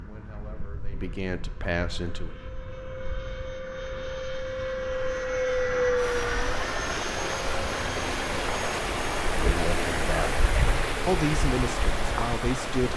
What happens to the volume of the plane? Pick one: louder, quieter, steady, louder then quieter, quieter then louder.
louder then quieter.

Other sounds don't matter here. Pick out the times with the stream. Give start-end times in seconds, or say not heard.
6.0-12.9.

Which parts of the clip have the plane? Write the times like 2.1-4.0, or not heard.
0.0-12.9.